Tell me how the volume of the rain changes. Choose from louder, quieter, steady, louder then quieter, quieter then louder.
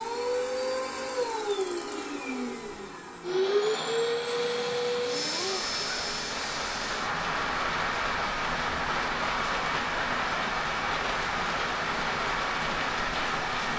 louder.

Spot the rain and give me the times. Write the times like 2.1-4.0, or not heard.
4.2-13.7.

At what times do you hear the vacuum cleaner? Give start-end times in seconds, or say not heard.
0.0-13.7.